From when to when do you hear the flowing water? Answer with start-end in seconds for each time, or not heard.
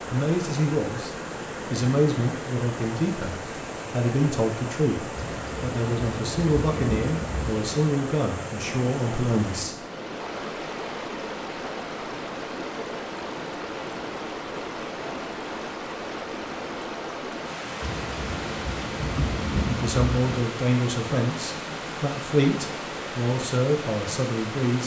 0.0-24.8.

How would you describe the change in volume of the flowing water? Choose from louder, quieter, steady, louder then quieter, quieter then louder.
steady.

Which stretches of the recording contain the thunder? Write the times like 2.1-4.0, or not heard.
5.1-7.7, 17.8-20.2.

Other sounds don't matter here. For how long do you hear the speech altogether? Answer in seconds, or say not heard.
15 s.